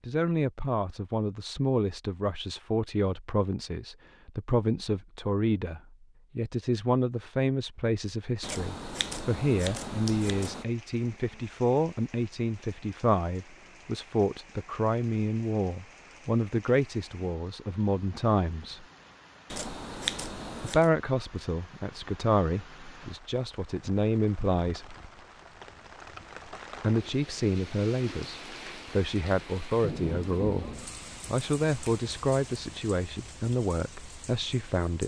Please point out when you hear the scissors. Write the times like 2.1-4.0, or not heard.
8.4-10.7, 19.5-20.9.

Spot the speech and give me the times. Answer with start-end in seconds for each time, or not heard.
0.1-18.9, 20.6-24.9, 26.8-35.0.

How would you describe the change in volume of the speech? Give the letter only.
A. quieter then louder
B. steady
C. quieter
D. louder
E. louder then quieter
B.